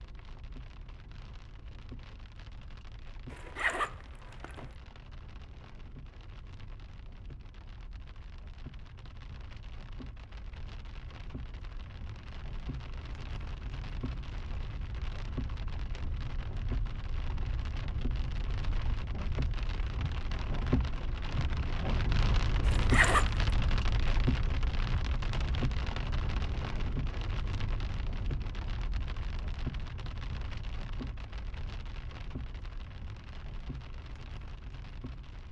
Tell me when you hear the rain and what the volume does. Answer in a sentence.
The rain can be heard from 0.0 to 35.4 s, getting louder then quieter.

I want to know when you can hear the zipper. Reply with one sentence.
The zipper can be heard from 3.3 to 4.7 s and from 22.6 to 23.3 s.